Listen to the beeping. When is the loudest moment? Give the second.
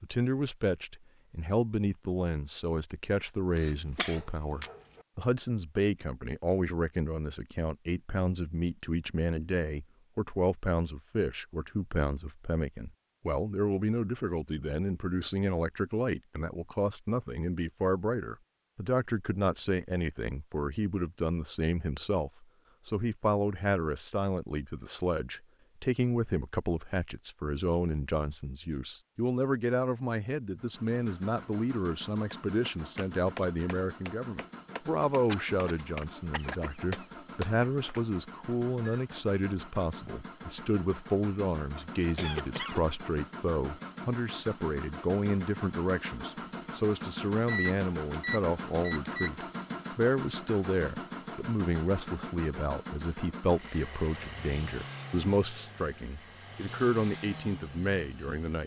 48 s.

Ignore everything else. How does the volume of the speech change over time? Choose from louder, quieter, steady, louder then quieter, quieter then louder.
steady.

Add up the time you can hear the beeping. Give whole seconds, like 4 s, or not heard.
2 s.